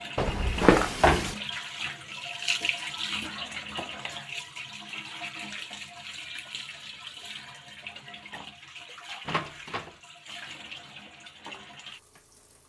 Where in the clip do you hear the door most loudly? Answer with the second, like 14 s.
1 s.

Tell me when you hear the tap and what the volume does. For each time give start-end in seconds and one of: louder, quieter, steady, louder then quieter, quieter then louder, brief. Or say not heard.
0.0-12.6 quieter.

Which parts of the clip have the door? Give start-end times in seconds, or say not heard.
0.1-1.4, 9.2-9.9.